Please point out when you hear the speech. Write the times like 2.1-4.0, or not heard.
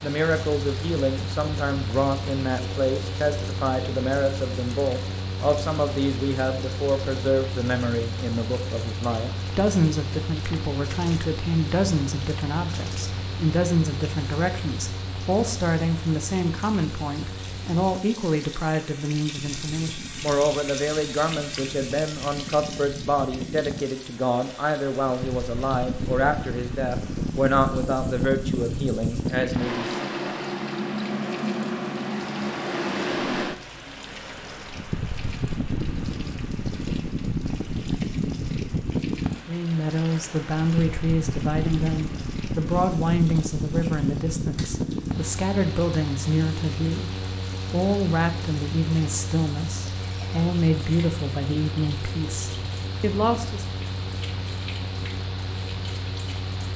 0.0-29.9, 39.5-47.1, 47.7-53.6.